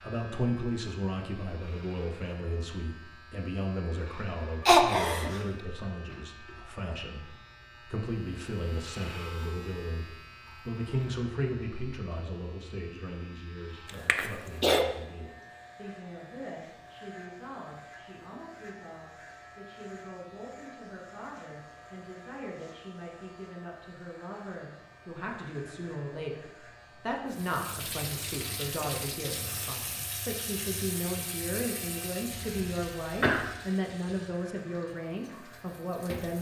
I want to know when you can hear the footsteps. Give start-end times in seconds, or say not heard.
not heard.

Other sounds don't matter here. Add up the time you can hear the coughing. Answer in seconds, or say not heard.
3 s.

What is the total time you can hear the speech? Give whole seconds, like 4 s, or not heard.
36 s.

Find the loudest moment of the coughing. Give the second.
5 s.